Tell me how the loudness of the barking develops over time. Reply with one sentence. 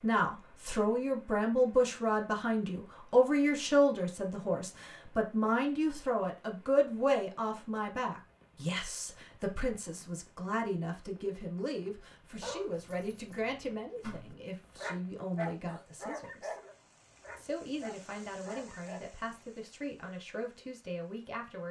The loudness of the barking goes up, then down.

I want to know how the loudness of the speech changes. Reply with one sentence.
The loudness of the speech goes down.